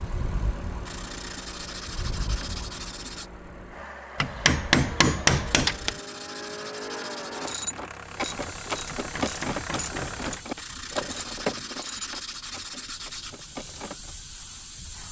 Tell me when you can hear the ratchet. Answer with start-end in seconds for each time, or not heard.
7.3-14.2.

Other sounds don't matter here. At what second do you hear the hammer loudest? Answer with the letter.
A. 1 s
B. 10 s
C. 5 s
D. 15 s
C.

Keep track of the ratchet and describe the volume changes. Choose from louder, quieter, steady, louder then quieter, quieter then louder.
quieter.